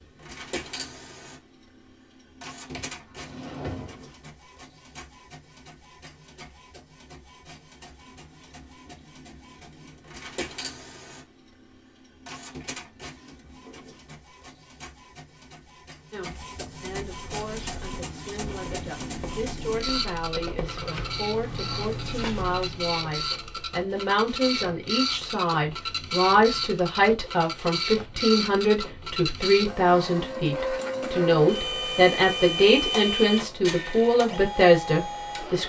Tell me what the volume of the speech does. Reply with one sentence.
The volume of the speech goes up.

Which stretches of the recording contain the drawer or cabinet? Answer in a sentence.
The drawer or cabinet can be heard from 2.7 to 4.2 s.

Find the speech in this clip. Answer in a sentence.
You can hear the speech from 16.1 to 35.6 s.